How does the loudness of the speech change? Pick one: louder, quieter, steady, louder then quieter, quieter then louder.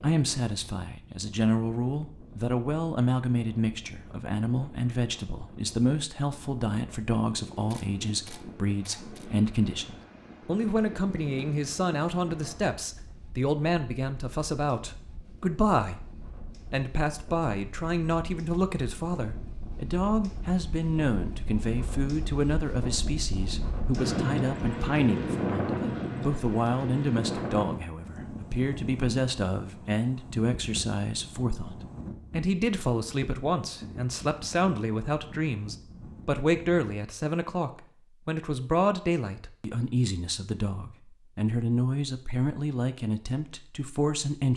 steady.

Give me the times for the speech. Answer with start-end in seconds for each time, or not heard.
0.0-44.5.